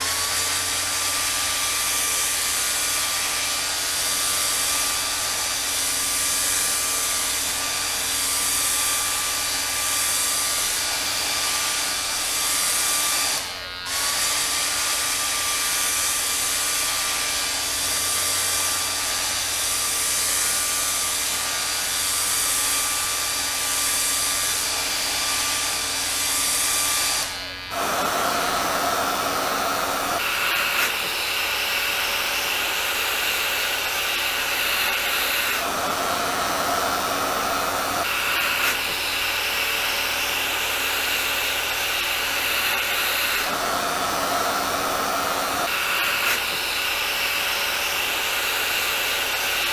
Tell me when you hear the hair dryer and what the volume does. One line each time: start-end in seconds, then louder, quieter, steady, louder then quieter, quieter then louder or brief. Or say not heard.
0.0-49.6 steady.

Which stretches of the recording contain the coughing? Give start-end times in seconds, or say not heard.
not heard.